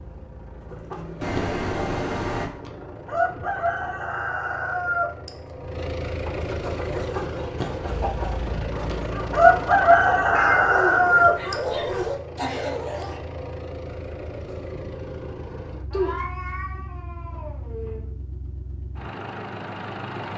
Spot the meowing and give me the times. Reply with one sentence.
You can hear the meowing from 1.2 to 2.5 s, from 10.3 to 11.1 s and from 15.9 to 18.1 s.